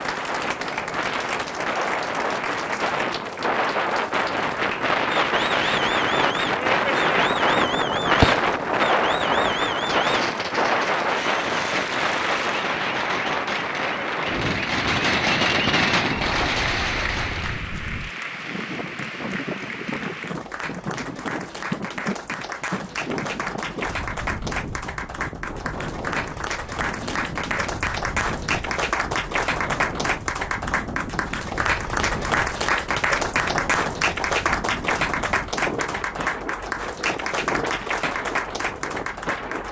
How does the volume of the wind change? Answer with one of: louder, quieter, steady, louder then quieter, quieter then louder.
quieter.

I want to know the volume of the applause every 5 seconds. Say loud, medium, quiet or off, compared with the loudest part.
medium, medium, medium, medium, medium, loud, loud, loud.